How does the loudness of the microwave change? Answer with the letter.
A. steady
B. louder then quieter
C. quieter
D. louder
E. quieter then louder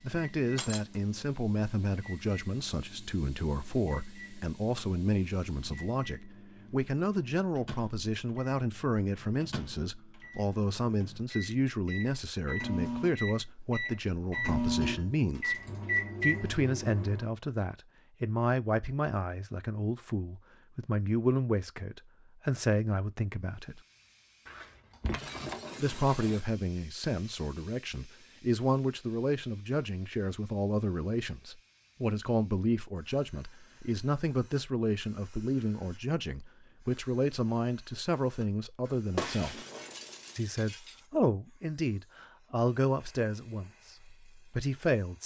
D.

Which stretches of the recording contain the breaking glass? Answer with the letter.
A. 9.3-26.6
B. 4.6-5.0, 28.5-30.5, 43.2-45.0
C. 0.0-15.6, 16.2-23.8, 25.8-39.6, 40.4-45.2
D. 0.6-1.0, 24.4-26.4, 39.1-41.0
D.